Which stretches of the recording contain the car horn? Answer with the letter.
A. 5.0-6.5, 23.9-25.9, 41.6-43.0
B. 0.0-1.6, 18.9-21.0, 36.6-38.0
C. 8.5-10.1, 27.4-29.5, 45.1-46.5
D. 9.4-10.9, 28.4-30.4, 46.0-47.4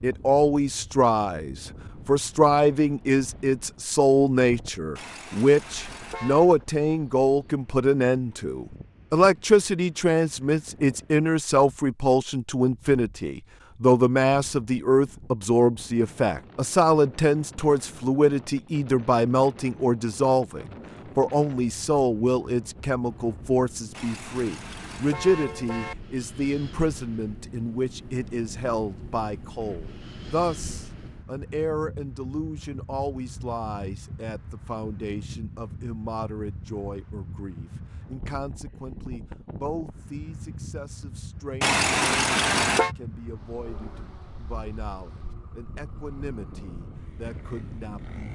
A.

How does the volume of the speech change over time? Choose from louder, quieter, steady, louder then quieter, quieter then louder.
quieter.